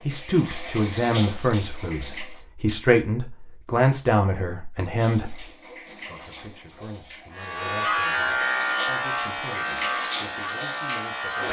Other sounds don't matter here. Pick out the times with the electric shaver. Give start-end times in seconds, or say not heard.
7.3-11.4.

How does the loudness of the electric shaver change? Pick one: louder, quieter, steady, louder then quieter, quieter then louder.
quieter.